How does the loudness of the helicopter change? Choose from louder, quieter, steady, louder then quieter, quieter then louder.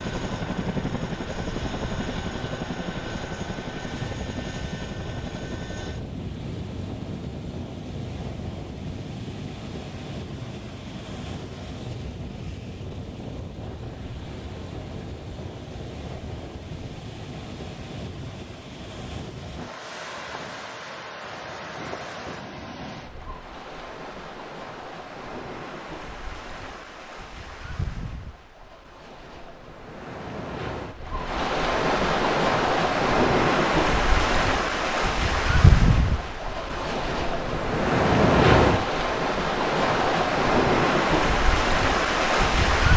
quieter.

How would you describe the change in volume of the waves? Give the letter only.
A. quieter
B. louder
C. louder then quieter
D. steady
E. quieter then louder
B.